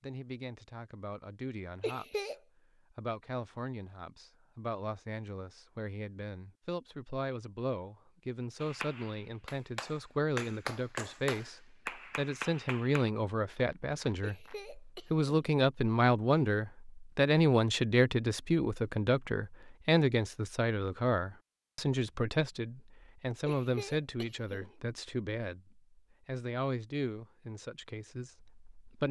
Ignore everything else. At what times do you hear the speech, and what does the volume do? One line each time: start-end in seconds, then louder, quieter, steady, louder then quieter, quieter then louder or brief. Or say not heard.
0.0-29.0 louder then quieter.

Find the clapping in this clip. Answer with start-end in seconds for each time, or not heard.
8.6-14.6.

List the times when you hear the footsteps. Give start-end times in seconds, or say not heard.
not heard.